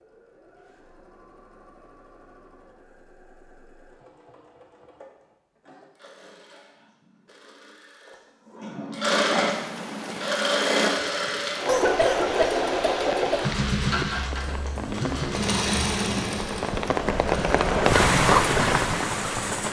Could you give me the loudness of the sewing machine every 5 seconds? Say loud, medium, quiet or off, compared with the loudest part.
quiet, medium, loud, loud.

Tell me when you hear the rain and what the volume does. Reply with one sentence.
The rain can be heard from 9.5 to 19.6 s, getting louder.